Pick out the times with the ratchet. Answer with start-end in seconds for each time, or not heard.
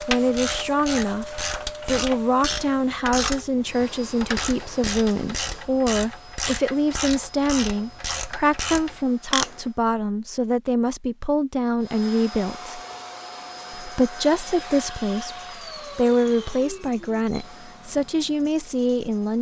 0.0-9.6.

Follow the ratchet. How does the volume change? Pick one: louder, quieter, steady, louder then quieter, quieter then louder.
steady.